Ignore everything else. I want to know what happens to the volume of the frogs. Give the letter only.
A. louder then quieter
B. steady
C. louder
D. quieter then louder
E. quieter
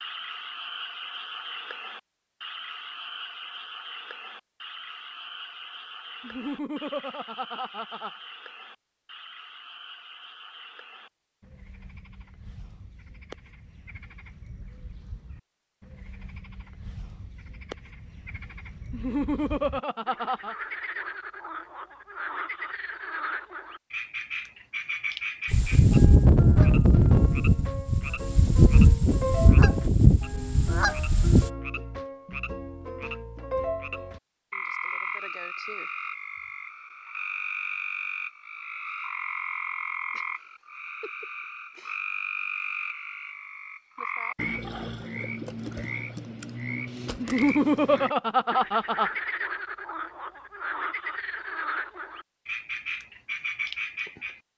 C.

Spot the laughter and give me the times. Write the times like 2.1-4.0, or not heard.
6.2-8.1, 18.9-20.6, 47.2-49.1.